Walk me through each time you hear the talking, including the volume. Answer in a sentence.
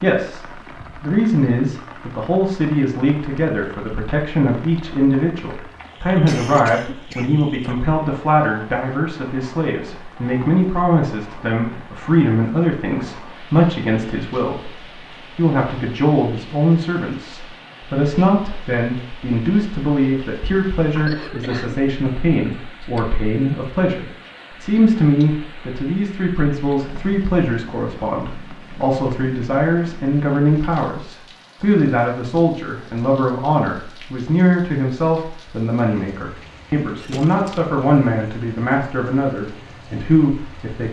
The talking can be heard from 0.0 to 40.8 s, at a steady volume.